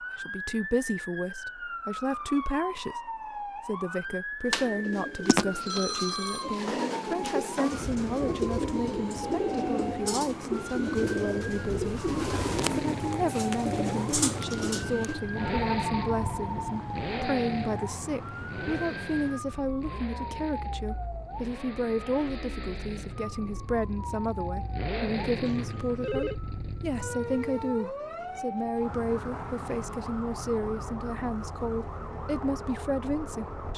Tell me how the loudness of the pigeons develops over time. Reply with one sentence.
The loudness of the pigeons stays about the same.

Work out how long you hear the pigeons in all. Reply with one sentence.
You can hear the pigeons for 11 seconds altogether.